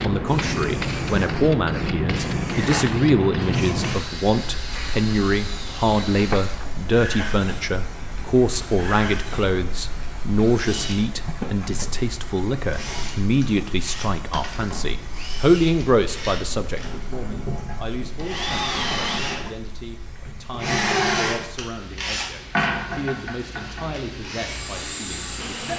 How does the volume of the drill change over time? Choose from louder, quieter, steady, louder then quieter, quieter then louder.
louder.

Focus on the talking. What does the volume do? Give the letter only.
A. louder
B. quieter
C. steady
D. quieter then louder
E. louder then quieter
B.